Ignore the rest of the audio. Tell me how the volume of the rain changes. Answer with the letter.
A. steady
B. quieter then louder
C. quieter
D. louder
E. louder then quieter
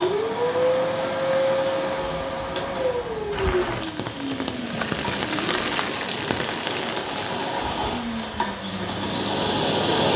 E.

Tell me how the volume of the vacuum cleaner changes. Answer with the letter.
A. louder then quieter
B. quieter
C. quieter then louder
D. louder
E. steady
C.